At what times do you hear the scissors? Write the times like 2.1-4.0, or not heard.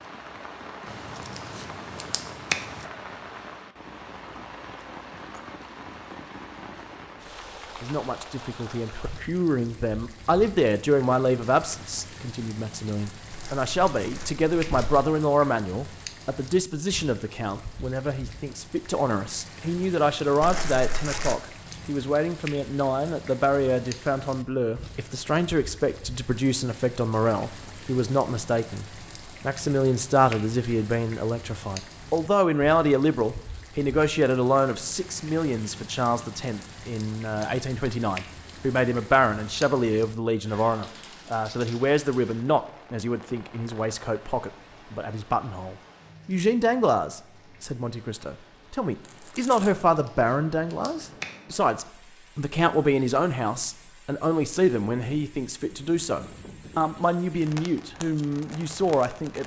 0.8-2.9, 49.8-51.4.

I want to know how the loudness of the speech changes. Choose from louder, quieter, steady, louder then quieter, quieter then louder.
steady.